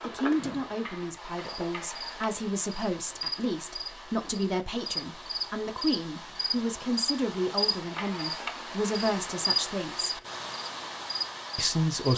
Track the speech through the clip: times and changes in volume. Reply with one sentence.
You can hear the speech from 0.1 to 10.2 s, at a steady volume; and briefly from 11.6 to 12.1 s.